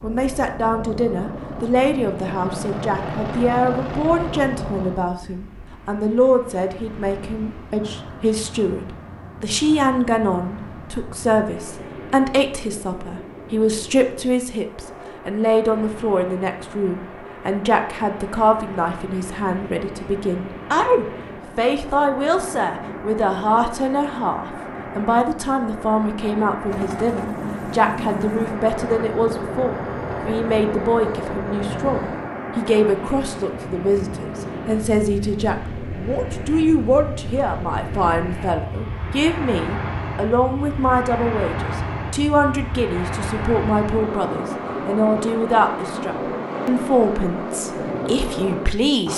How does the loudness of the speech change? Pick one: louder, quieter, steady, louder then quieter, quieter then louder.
steady.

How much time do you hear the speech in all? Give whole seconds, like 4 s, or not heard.
49 s.